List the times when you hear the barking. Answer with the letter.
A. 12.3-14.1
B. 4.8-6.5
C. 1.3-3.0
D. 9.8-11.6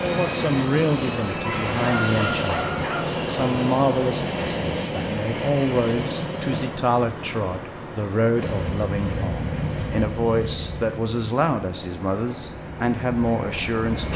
C.